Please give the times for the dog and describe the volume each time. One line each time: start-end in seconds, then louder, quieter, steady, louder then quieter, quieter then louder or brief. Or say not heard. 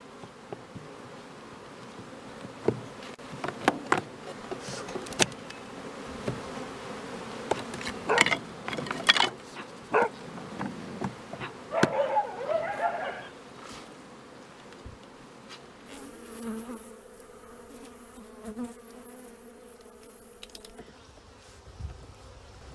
7.5-13.3 quieter then louder.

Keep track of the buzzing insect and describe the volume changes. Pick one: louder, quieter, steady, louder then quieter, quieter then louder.
quieter.